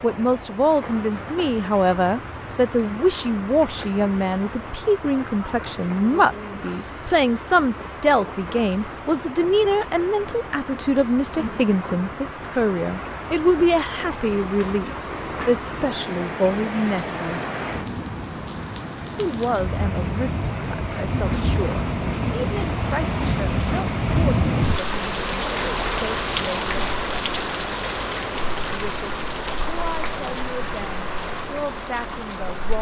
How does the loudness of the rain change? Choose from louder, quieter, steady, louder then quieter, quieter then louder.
louder.